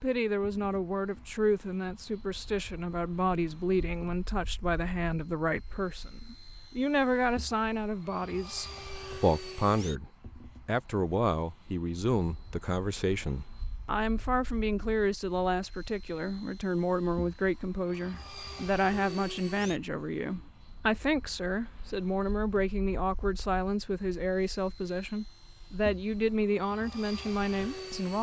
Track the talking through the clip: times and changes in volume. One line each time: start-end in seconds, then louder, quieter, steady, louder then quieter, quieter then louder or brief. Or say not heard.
0.0-28.1 steady.